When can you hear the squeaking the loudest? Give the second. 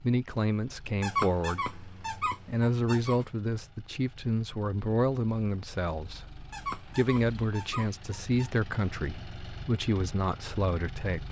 1 s.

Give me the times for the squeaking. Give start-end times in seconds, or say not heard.
1.0-3.3, 6.5-8.5.